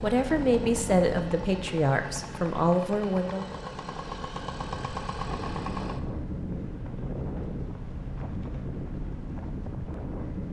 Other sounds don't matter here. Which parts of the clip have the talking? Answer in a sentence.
You can hear the talking from 0.0 to 3.5 s.